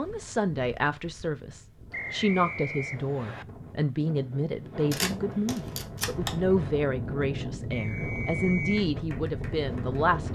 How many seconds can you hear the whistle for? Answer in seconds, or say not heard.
3 s.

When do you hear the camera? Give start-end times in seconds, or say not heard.
4.9-6.3.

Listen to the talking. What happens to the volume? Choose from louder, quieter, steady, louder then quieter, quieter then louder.
steady.